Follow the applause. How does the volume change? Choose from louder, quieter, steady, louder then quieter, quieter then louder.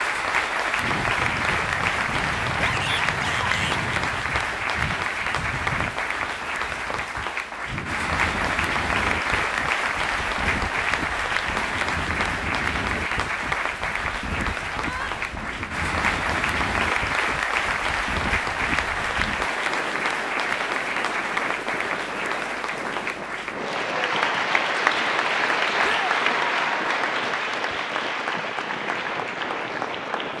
steady.